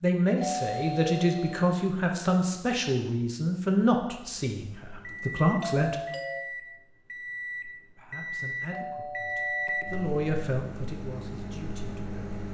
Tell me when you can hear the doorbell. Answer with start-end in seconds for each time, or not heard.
0.4-1.7, 5.6-6.5, 8.7-10.3.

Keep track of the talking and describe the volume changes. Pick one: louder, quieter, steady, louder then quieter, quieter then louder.
quieter.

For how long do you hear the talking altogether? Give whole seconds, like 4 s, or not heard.
10 s.